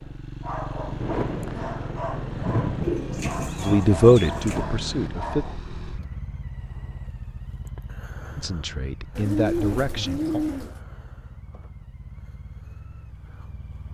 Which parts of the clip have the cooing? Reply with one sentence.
You can hear the cooing from 2.8 to 4.6 s and from 9.2 to 10.8 s.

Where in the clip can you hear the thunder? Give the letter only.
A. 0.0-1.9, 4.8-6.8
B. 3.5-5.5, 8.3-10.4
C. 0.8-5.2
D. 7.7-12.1
C.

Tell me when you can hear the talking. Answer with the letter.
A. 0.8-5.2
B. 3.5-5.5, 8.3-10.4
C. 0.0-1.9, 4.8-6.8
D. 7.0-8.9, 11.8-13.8
B.